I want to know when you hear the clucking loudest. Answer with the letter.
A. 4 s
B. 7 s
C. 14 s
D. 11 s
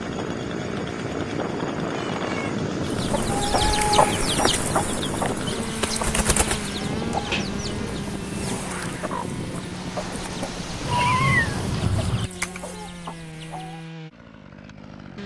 A.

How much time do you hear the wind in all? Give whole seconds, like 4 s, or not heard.
12 s.